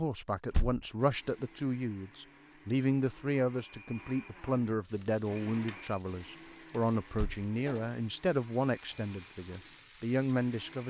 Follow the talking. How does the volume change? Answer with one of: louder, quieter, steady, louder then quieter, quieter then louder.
steady.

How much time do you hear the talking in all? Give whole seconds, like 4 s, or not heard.
11 s.